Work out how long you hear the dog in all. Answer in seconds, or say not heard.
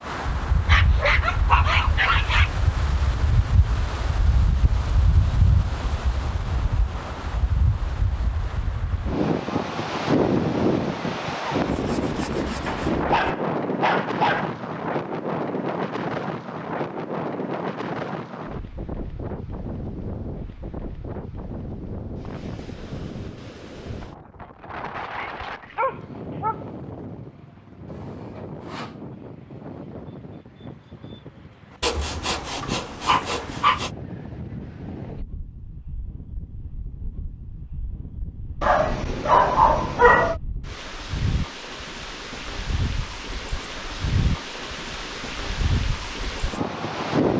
8 s.